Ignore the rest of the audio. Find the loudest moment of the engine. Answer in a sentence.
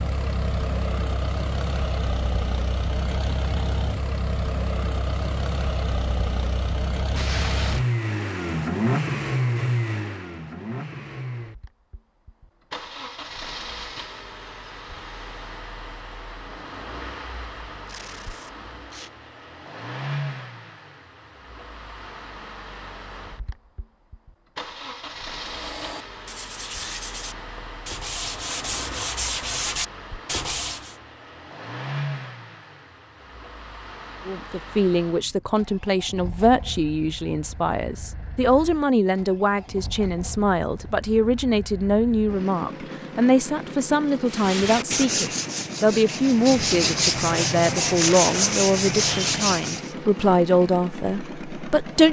The volume of the engine peaks at 9 seconds.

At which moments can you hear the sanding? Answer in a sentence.
The sanding can be heard from 25.4 to 30.9 s and from 44.2 to 50.0 s.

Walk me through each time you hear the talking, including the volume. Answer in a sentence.
The talking can be heard from 34.2 to 52.0 s, at a steady volume.